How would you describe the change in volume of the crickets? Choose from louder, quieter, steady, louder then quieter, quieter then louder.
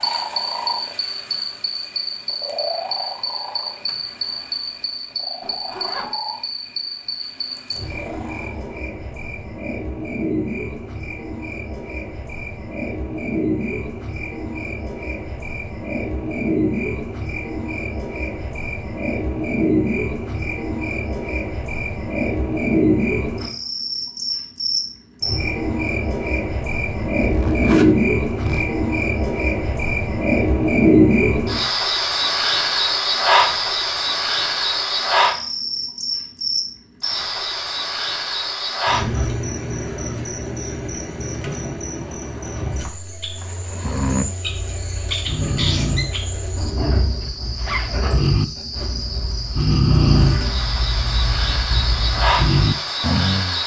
louder then quieter.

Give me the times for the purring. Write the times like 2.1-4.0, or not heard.
0.0-8.8.